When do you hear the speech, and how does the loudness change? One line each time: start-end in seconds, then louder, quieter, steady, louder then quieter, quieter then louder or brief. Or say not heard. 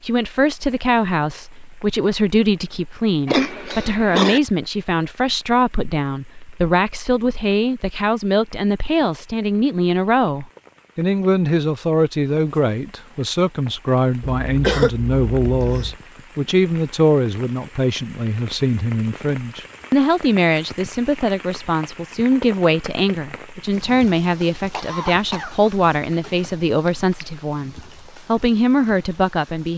0.0-29.7 steady.